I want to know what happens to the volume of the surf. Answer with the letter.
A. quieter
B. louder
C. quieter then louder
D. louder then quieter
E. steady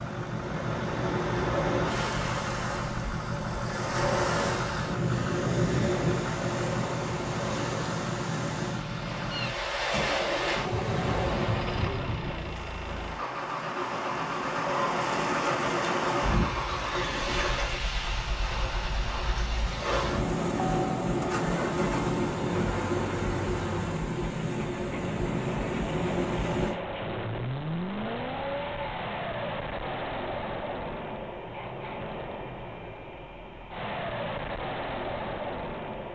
E.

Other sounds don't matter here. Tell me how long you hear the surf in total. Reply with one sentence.
You can hear the surf for 27 seconds altogether.